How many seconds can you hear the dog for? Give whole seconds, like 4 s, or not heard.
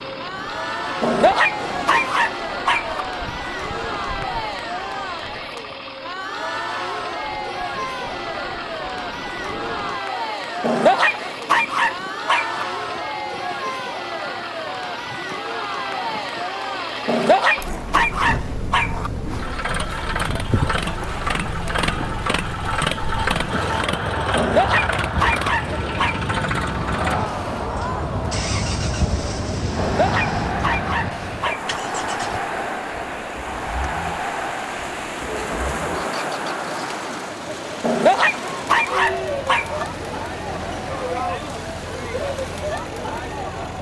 12 s.